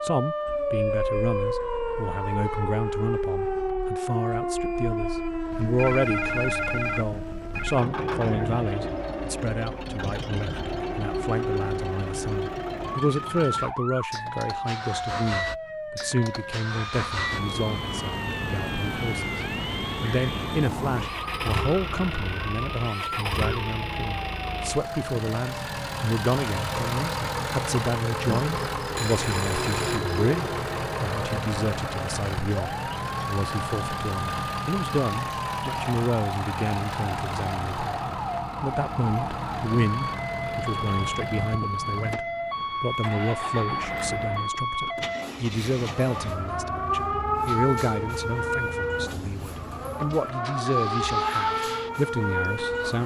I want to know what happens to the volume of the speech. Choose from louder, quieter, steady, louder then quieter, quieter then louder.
steady.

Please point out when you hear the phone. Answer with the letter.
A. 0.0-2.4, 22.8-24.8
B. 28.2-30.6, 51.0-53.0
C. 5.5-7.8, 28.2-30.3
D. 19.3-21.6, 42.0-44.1
C.